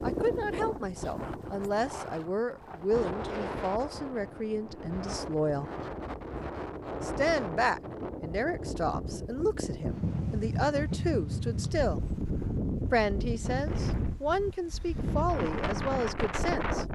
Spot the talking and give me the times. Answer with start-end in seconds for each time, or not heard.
0.0-5.7, 7.0-12.1, 12.9-16.9.